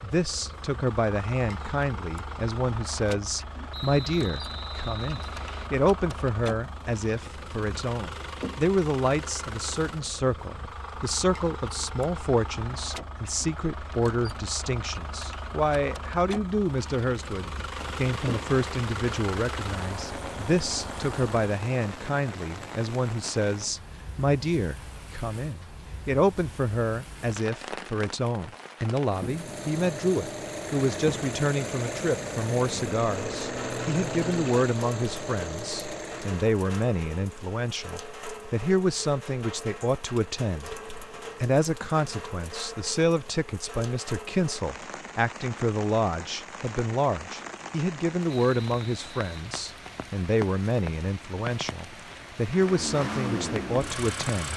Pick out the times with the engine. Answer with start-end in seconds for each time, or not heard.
0.0-21.6, 29.2-36.5, 52.5-54.5.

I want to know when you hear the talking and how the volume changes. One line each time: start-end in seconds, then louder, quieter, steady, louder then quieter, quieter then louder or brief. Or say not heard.
0.0-40.8 steady
41.4-54.5 steady.